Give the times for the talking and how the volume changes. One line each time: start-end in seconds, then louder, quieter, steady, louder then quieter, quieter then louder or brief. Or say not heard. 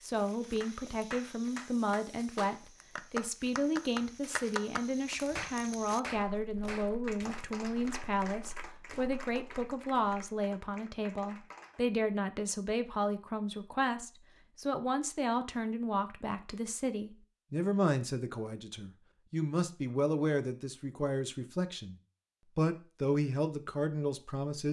0.0-21.9 steady
22.6-24.6 brief.